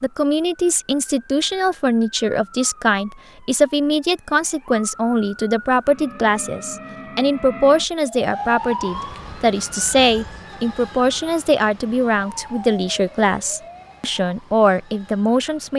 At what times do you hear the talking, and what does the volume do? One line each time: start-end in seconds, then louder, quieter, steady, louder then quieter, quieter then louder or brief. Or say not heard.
0.0-15.7 steady.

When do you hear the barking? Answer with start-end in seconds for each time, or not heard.
not heard.